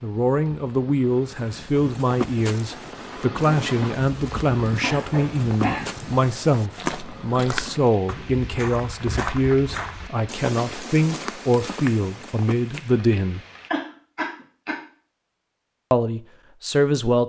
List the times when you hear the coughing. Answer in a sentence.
You can hear the coughing from 4.8 to 6.0 s and from 13.7 to 14.8 s.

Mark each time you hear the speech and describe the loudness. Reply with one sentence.
You can hear the speech from 0.0 to 13.4 s, at a steady volume; and briefly from 15.9 to 17.2 s.